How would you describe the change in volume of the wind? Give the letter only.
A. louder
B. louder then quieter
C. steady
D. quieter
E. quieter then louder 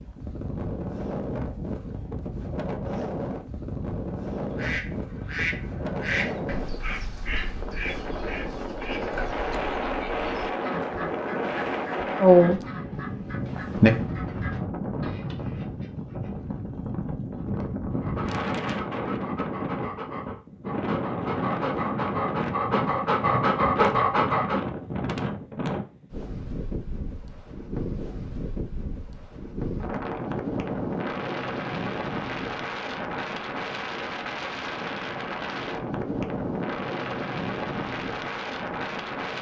C.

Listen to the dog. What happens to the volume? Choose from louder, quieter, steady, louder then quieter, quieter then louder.
louder.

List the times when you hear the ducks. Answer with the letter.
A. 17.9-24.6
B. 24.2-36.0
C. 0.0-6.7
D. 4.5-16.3
D.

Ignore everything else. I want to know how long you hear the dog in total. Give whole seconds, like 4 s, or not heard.
7 s.